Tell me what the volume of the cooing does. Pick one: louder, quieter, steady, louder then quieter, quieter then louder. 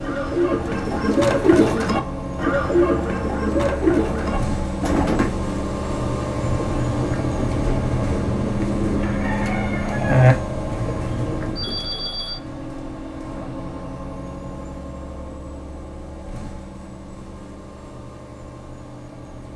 quieter then louder.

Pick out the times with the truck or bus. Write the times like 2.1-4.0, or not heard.
0.0-19.5.